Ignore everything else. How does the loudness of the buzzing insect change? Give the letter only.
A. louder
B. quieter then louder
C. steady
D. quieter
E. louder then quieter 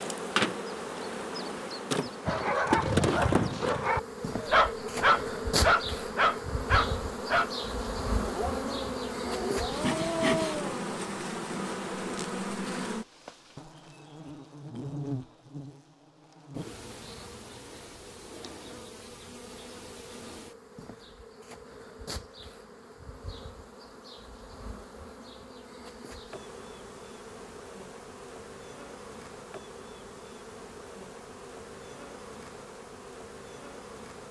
D.